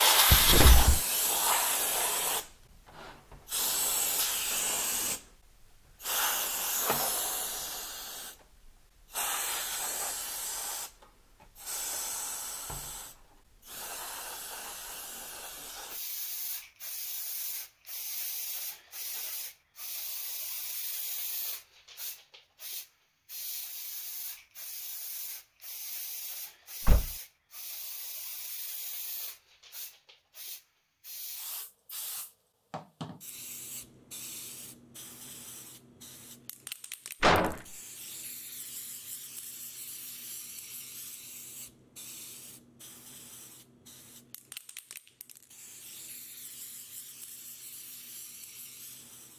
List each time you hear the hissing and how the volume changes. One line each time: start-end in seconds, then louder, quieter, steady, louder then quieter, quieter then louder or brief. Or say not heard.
0.0-49.3 quieter.